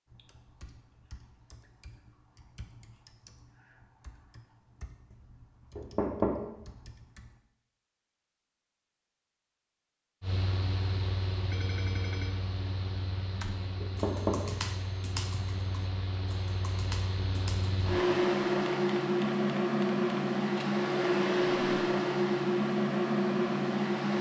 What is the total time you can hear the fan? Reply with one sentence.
The fan can be heard for 14 seconds in total.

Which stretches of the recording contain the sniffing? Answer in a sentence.
The sniffing can't be heard in this clip.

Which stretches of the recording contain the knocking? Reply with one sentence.
You can hear the knocking from 5.8 to 6.5 s and from 13.8 to 14.5 s.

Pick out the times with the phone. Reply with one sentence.
You can hear the phone from 11.5 to 12.5 s.